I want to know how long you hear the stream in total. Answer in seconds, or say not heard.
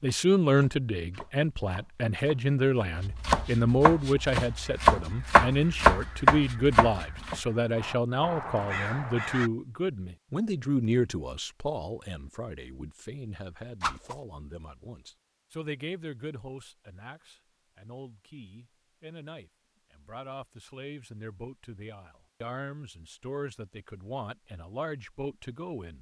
not heard.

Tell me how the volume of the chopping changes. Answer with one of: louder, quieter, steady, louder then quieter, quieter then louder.
louder.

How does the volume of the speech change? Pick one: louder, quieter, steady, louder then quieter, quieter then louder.
quieter.